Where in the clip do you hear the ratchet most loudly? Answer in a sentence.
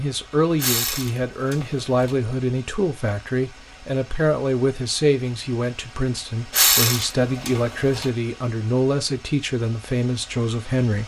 The volume of the ratchet peaks at 7 seconds.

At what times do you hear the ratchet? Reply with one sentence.
The ratchet can be heard from 0.6 to 2.1 s and from 6.5 to 8.1 s.